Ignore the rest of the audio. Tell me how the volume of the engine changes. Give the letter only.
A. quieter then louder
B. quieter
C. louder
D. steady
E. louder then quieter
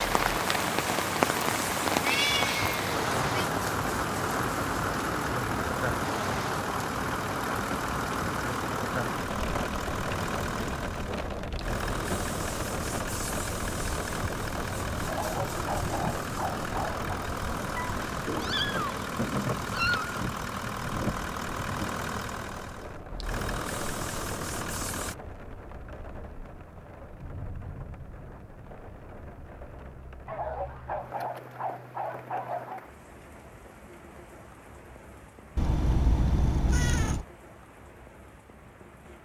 D.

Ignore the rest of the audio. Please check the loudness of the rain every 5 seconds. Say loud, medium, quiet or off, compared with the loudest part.
loud, loud, medium, medium, medium, quiet, quiet, quiet.